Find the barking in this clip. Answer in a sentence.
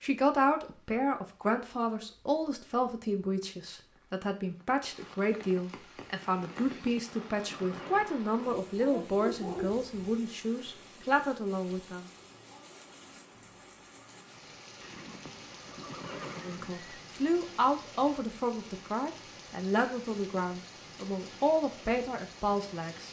The barking can be heard from 8.6 to 10.1 s.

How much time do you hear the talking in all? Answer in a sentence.
You can hear the talking for 19 seconds altogether.